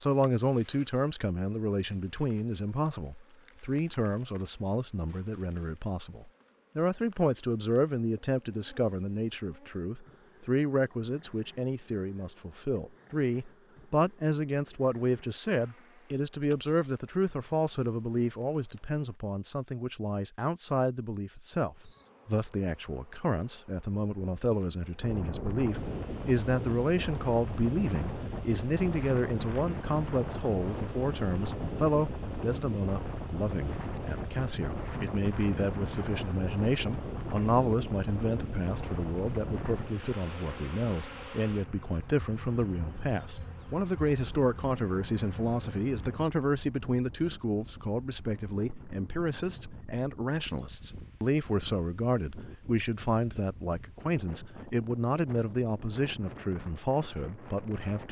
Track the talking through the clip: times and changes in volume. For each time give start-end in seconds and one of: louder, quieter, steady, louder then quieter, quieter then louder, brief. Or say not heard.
0.0-58.0 steady.